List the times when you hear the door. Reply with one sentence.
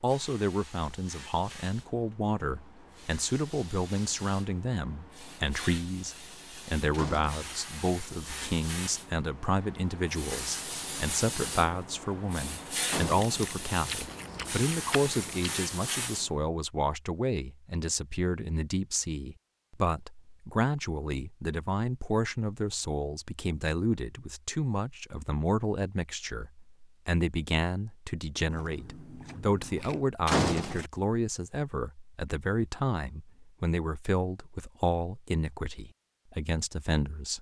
The door can be heard from 6.9 to 7.5 s, from 12.8 to 13.5 s and from 30.2 to 30.9 s.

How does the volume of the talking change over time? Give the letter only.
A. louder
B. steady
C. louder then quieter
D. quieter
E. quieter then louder
B.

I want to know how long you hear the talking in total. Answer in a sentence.
You can hear the talking for 37 seconds altogether.